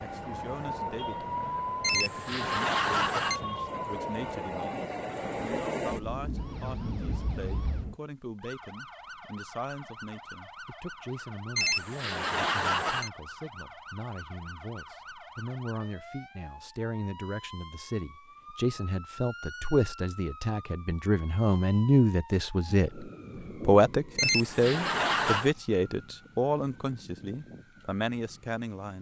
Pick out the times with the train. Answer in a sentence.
The train can be heard from 0.0 to 8.0 s.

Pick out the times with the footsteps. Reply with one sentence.
You can't hear the footsteps here.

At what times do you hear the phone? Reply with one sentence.
You can hear the phone from 1.8 to 3.4 s, from 11.6 to 13.1 s and from 24.1 to 25.6 s.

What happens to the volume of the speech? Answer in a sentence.
The volume of the speech goes up.